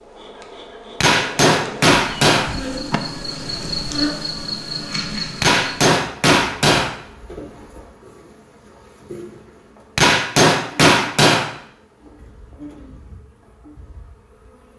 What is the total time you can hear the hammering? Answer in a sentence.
You can hear the hammering for 5 seconds altogether.